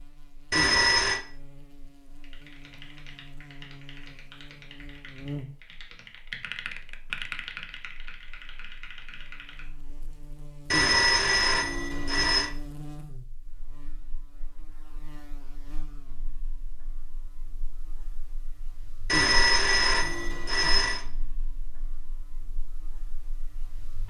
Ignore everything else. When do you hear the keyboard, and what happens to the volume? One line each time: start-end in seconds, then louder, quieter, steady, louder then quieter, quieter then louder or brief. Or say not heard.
2.2-9.7 louder then quieter.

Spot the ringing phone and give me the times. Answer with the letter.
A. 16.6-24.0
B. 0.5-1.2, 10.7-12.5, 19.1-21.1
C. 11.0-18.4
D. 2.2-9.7
B.